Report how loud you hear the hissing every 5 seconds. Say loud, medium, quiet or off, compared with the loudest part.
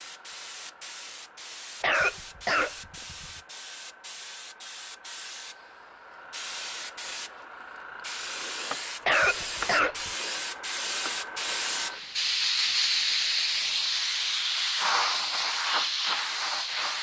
quiet, medium, loud, loud.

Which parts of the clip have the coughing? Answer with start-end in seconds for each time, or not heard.
1.8-3.3, 9.1-10.1.